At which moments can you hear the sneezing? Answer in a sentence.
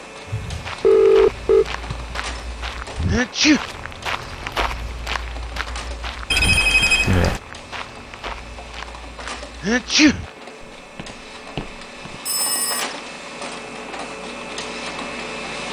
You can hear the sneezing from 3.0 to 3.6 s and from 9.6 to 10.2 s.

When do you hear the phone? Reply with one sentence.
The phone can be heard from 0.3 to 2.1 s, from 6.3 to 7.4 s and from 12.2 to 12.8 s.